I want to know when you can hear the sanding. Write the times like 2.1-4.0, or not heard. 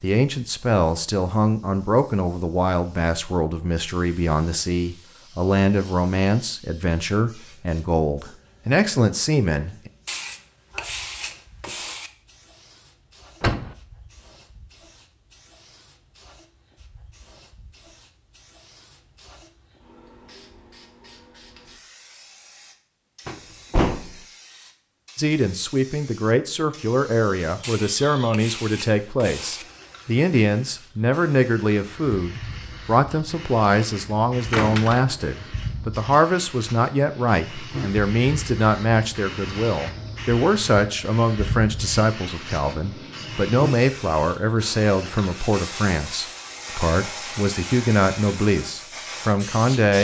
10.1-12.1, 27.6-29.6.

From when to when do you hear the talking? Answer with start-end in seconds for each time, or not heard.
0.0-9.9, 25.1-49.9.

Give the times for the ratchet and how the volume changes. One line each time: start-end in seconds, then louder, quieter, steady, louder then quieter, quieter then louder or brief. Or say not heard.
not heard.